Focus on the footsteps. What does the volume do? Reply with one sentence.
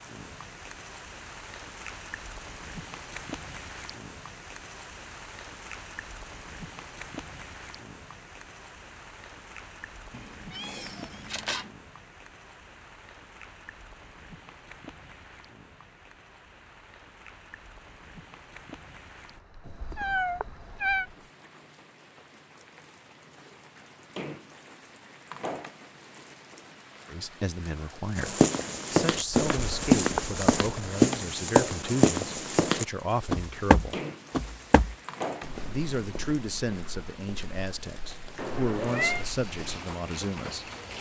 The loudness of the footsteps goes down.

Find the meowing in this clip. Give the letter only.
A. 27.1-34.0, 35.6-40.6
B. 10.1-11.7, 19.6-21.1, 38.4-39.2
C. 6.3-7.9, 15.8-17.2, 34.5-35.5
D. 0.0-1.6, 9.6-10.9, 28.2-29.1
B.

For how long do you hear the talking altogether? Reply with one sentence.
You can hear the talking for 12 seconds altogether.